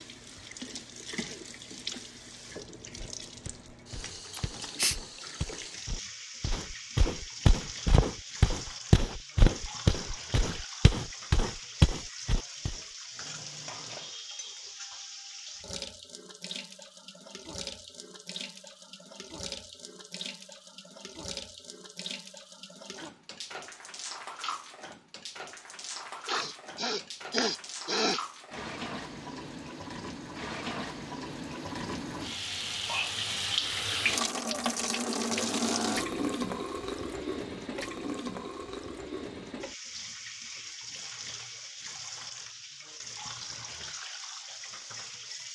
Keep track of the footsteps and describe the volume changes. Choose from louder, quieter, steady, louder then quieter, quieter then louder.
louder.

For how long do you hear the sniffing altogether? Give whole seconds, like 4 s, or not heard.
3 s.